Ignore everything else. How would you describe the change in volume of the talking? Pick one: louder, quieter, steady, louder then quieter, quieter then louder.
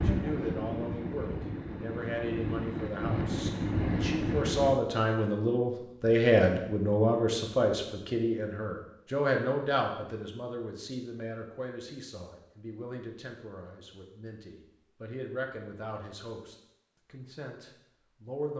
louder then quieter.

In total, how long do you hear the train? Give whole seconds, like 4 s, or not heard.
5 s.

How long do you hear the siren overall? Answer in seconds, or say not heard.
not heard.